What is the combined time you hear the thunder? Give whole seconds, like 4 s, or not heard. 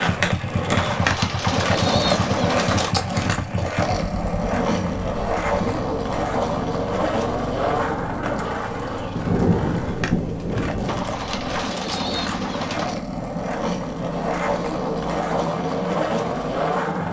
2 s.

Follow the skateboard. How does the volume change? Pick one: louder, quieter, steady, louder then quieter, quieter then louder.
quieter then louder.